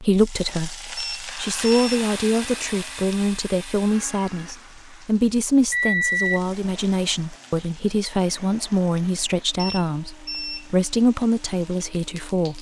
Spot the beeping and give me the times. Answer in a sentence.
You can hear the beeping from 0.9 to 2.0 s, from 5.7 to 6.4 s and from 9.6 to 10.7 s.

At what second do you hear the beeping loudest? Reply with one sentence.
The loudest moment of the beeping is at 6 seconds.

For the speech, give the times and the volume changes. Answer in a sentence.
You can hear the speech from 0.0 to 12.5 s, at a steady volume.